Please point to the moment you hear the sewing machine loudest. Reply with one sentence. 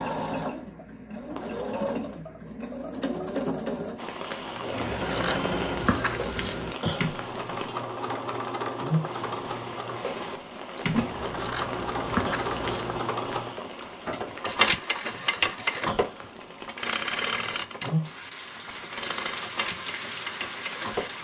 The volume of the sewing machine peaks at 15 seconds.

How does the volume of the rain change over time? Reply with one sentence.
The volume of the rain goes down, then up.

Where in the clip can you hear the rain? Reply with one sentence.
You can hear the rain from 4.0 to 21.1 s.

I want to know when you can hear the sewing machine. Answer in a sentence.
You can hear the sewing machine from 0.0 to 21.1 s.